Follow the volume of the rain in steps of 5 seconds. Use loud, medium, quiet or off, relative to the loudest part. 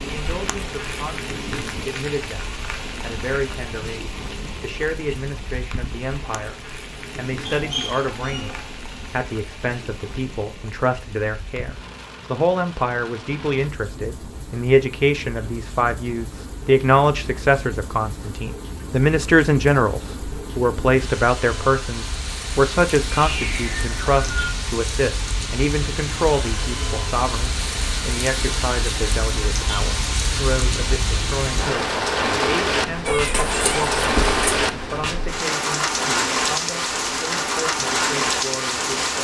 medium, quiet, quiet, quiet, medium, medium, loud, loud.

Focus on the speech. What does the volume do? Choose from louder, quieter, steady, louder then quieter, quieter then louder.
louder then quieter.